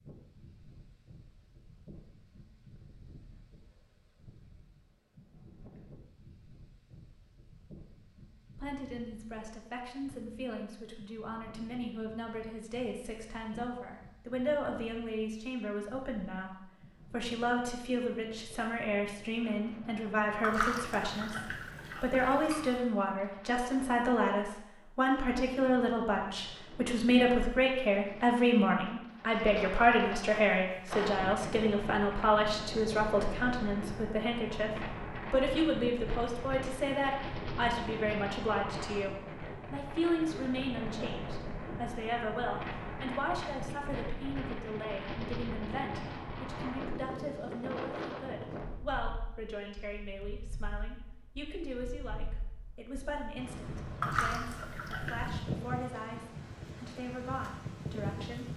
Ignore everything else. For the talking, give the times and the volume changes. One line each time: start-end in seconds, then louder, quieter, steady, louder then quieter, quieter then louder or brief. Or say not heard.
8.6-21.4 louder
22.0-58.5 quieter.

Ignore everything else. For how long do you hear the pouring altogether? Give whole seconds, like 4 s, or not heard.
4 s.